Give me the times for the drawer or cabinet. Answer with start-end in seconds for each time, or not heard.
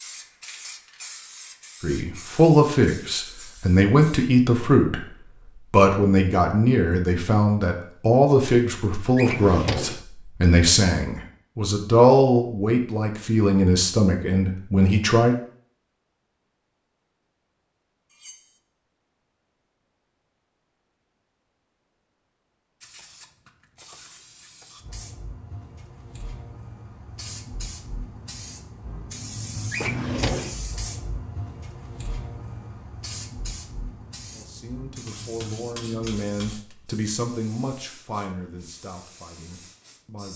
9.2-10.1, 29.7-30.6.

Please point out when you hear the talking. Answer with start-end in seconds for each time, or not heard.
1.8-5.0, 5.7-15.3, 34.3-40.3.